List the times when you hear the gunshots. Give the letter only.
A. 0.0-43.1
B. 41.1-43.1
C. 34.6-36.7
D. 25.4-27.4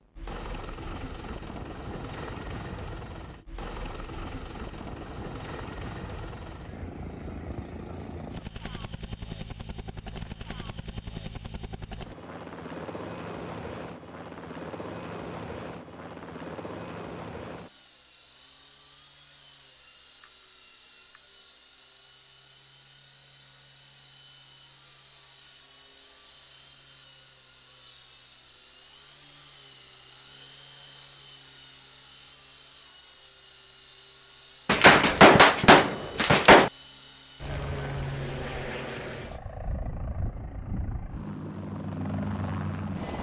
C.